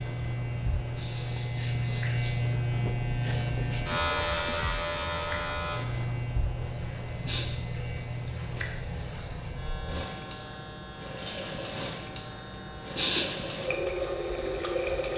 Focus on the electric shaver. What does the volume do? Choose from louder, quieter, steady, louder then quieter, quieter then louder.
quieter.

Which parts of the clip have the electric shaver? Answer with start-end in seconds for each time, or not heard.
0.0-15.1.